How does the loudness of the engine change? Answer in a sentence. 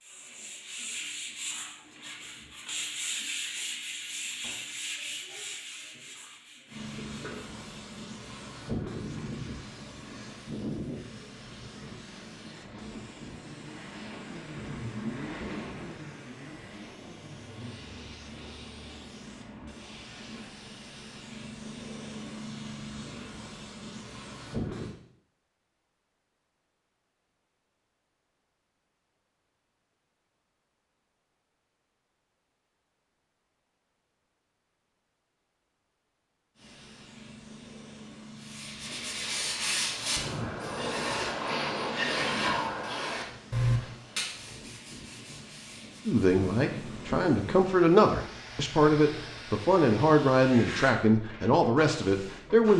The loudness of the engine goes up, then down.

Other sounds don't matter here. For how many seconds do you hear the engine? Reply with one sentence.
The engine can be heard for 8 seconds in total.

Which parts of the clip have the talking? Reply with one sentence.
You can hear the talking from 46.0 to 52.7 s.